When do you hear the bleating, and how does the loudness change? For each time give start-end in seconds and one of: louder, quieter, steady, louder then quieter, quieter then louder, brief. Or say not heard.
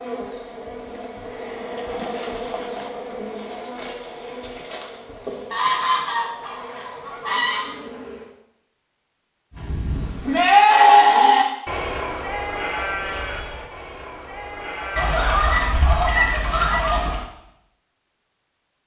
9.5-15.6 quieter.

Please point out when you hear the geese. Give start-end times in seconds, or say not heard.
5.5-7.8, 14.9-17.2.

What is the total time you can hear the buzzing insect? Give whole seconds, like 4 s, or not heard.
8 s.